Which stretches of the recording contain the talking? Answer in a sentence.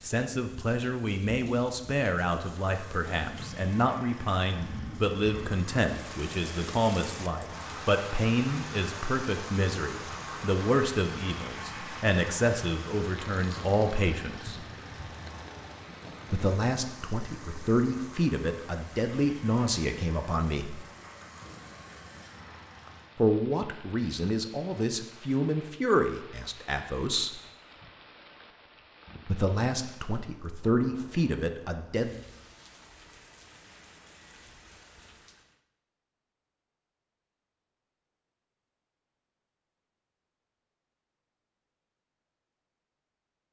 The talking can be heard from 0.0 to 14.6 s, from 16.3 to 20.8 s, from 23.1 to 27.3 s and from 29.2 to 32.1 s.